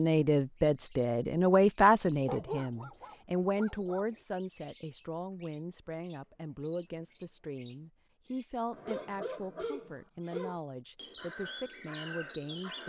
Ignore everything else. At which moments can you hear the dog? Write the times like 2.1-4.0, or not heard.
2.2-4.2, 8.7-10.6.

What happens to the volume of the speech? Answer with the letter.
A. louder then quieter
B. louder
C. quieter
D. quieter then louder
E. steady
C.